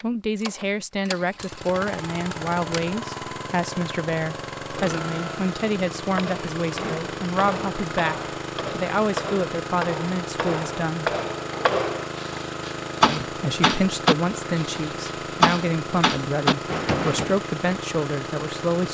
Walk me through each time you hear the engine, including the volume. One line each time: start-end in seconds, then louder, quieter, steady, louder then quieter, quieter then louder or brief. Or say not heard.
0.0-18.8 steady.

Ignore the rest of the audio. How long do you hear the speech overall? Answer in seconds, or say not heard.
17 s.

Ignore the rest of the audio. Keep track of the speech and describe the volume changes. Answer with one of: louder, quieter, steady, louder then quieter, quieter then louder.
steady.